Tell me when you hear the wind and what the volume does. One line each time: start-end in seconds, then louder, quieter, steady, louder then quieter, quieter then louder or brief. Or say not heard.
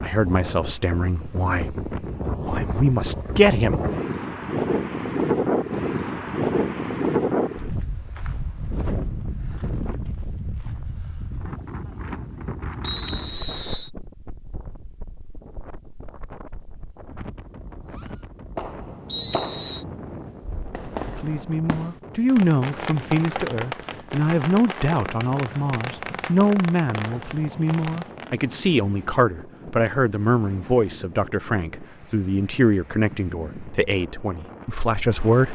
0.0-35.5 quieter.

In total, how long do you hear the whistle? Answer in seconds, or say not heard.
2 s.